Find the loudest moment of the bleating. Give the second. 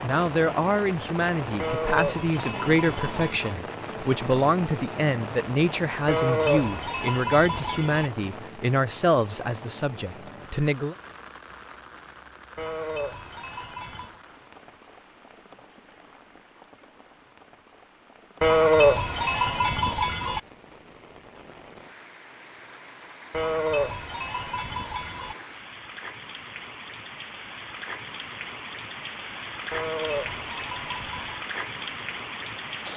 19 s.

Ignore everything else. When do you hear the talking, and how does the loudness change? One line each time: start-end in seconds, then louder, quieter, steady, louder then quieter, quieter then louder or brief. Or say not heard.
0.0-10.9 steady.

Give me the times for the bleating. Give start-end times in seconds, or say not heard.
1.6-3.5, 6.0-8.1, 12.6-14.2, 18.4-20.4, 23.3-25.4, 29.7-31.4.